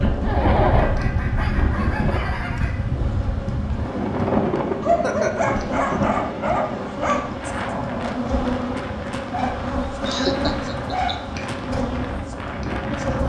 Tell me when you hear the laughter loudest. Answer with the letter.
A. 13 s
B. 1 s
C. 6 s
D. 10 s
B.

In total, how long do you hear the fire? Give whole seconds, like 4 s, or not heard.
not heard.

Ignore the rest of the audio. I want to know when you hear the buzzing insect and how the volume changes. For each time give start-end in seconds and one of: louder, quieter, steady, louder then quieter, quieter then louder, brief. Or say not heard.
0.0-13.2 louder.